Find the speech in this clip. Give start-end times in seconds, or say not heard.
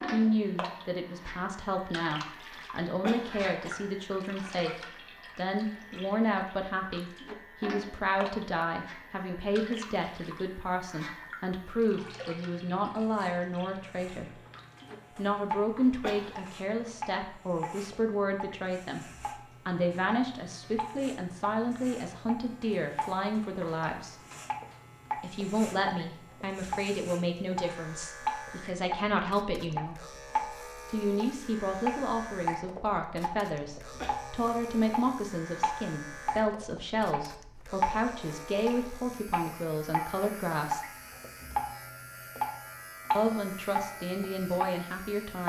0.1-14.3, 15.2-24.2, 25.1-30.0, 30.9-40.9, 43.1-45.4.